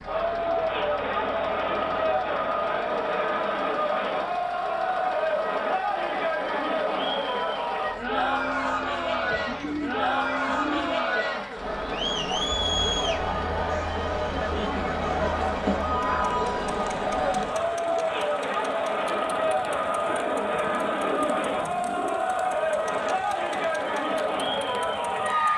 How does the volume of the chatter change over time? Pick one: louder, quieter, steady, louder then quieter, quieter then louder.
steady.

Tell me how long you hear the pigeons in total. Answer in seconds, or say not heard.
4 s.